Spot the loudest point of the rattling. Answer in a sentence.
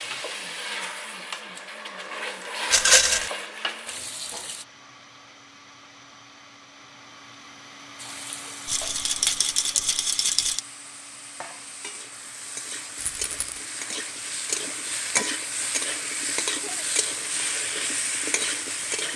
The volume of the rattling peaks at 3 seconds.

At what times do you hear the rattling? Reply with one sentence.
You can hear the rattling from 2.7 to 3.3 s, from 8.7 to 10.6 s and from 12.9 to 13.7 s.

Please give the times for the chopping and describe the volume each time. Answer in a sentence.
The chopping can't be heard in this clip.